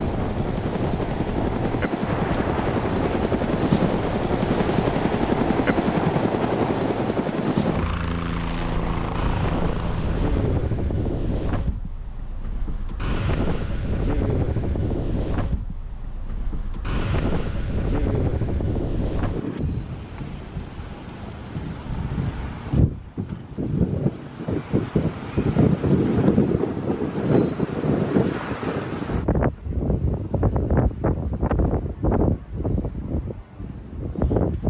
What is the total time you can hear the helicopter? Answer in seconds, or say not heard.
11 s.